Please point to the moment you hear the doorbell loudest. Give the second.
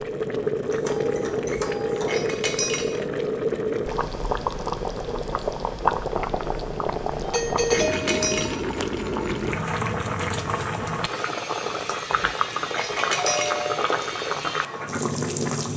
8 s.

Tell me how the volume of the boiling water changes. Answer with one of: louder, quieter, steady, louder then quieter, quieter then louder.
steady.